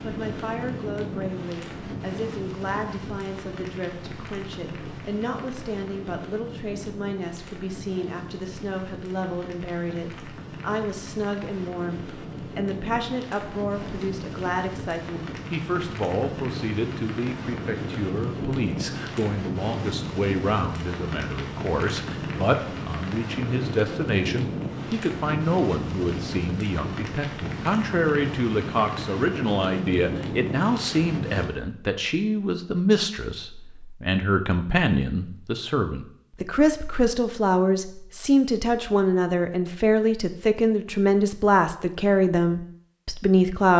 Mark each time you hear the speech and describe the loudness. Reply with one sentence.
The speech can be heard from 0.0 to 43.7 s, getting louder.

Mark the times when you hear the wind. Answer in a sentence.
You can hear the wind from 0.0 to 31.4 s.